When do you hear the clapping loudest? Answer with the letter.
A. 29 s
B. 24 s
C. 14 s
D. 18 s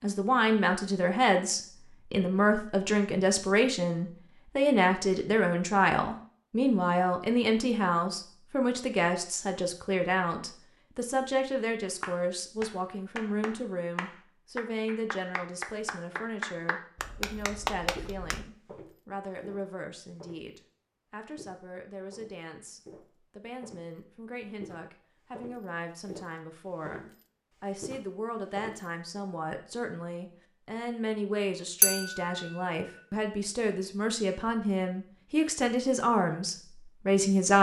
D.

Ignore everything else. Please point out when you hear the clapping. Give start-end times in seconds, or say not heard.
12.0-18.4.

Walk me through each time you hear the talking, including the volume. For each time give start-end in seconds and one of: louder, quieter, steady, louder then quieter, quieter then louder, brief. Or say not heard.
0.0-37.5 quieter then louder.